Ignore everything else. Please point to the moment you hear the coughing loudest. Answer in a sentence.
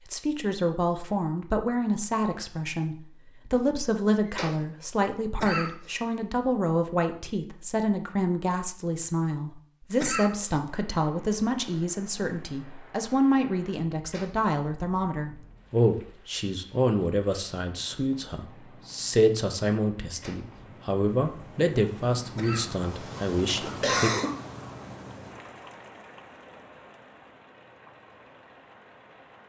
The loudest moment of the coughing is at 24 seconds.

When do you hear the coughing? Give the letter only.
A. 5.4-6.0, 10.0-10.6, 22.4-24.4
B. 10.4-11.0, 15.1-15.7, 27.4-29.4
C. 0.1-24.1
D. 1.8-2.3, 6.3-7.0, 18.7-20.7
A.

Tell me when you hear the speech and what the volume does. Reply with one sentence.
The speech can be heard from 0.1 to 24.1 s, at a steady volume.